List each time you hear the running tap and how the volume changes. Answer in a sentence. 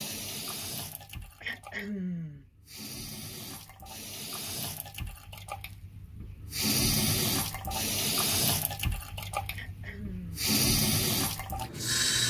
You can hear the running tap from 0.0 to 12.2 s, getting louder.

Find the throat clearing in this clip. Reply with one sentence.
The throat clearing can be heard from 1.4 to 2.5 s and from 9.5 to 10.6 s.